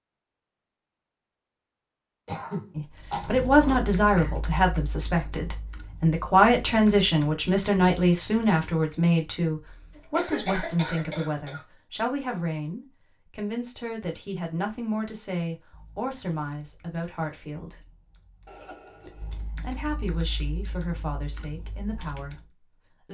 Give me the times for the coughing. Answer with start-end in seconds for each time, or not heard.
2.2-4.3, 9.9-11.6, 18.4-19.4.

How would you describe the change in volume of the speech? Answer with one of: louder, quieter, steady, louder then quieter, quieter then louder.
quieter.